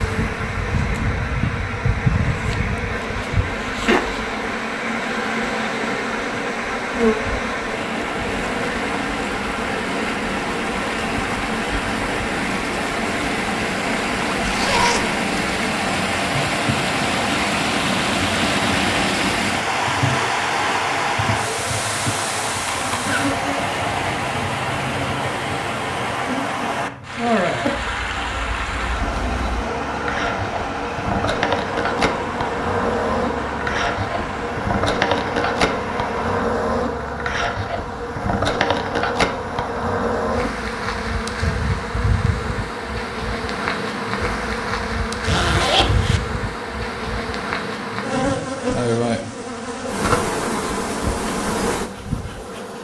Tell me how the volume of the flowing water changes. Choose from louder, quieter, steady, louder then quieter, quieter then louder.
louder then quieter.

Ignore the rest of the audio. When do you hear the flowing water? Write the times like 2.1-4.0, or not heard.
0.0-36.5.